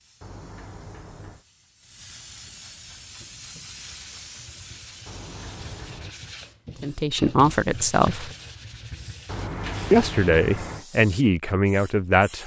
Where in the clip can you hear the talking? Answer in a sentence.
The talking can be heard from 6.8 to 8.3 s and from 9.9 to 12.4 s.